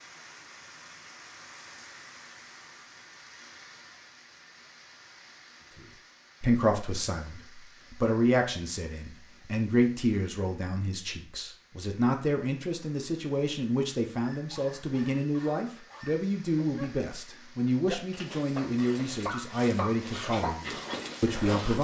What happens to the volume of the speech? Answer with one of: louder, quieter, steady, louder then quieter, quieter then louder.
steady.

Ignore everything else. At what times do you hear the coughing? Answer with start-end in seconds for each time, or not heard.
not heard.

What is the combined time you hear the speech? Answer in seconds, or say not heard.
15 s.